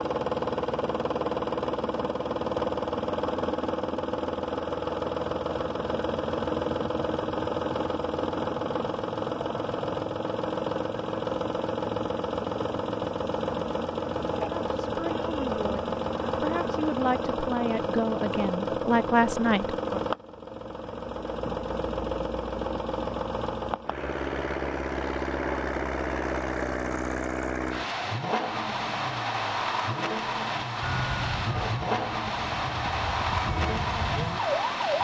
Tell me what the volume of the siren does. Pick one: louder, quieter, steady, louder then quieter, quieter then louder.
quieter then louder.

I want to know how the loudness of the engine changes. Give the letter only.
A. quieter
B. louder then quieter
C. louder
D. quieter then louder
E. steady
E.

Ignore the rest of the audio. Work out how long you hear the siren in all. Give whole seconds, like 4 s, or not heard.
4 s.